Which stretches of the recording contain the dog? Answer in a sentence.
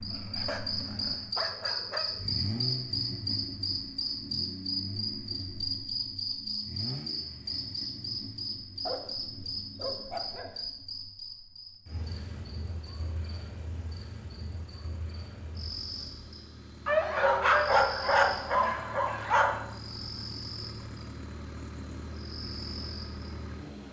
The dog can be heard from 0.1 to 2.3 s, from 8.8 to 10.7 s and from 16.9 to 19.6 s.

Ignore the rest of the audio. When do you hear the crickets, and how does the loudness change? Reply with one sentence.
The crickets can be heard from 0.0 to 23.6 s, getting quieter.